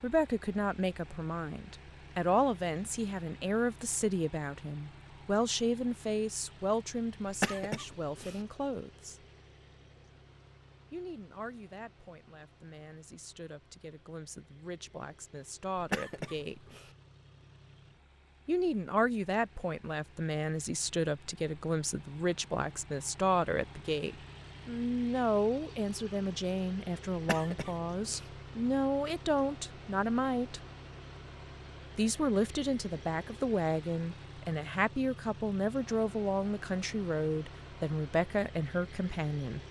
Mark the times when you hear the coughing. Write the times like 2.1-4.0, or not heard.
7.2-8.4, 15.8-16.9, 27.1-28.3.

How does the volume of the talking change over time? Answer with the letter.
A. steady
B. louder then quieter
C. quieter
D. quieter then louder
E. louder
D.